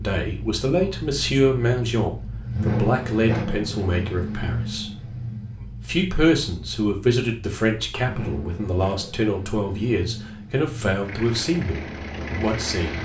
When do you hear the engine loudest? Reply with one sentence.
The volume of the engine peaks at 3 seconds.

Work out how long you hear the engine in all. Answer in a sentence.
You can hear the engine for 13 seconds altogether.